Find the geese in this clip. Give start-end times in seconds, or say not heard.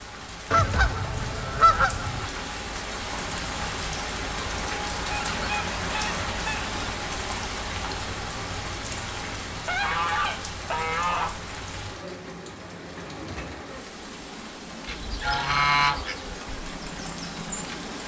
0.5-2.3, 4.9-6.8, 9.7-11.3, 14.8-16.4.